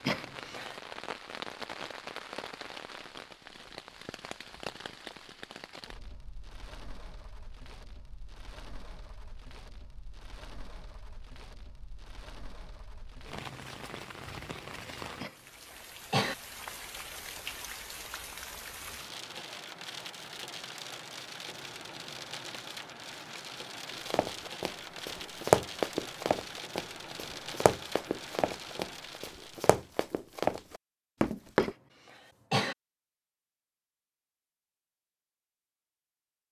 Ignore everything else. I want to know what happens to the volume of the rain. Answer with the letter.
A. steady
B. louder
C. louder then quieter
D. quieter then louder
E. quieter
D.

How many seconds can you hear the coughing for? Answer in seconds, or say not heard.
3 s.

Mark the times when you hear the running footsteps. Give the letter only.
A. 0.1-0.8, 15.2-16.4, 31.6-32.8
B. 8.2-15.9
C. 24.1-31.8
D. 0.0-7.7
C.